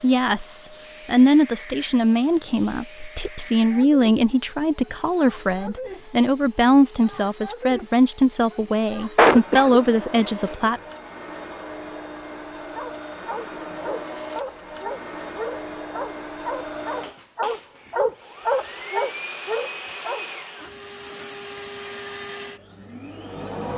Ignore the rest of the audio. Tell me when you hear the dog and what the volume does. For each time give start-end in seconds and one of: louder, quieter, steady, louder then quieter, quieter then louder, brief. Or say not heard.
12.8-20.2 louder.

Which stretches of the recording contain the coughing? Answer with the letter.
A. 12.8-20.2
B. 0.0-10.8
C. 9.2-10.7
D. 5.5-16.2
C.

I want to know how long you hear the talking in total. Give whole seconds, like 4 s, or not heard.
11 s.